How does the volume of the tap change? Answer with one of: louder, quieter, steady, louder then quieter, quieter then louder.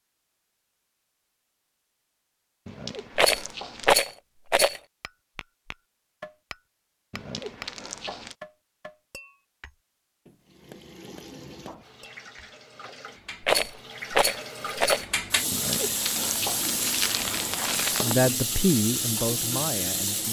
louder.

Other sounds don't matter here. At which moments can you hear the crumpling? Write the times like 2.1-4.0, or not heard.
2.6-4.0, 7.1-8.3, 15.5-18.1.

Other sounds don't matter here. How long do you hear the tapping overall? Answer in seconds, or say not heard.
8 s.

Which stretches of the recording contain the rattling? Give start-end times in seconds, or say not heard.
3.1-4.8, 13.4-15.1.